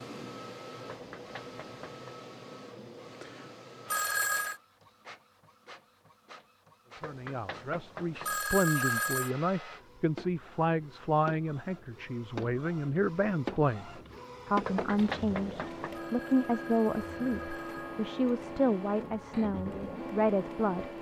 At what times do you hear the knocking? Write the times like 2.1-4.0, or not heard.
0.8-2.1, 7.0-8.4, 14.6-16.0.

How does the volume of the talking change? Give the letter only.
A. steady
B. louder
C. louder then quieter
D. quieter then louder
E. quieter
A.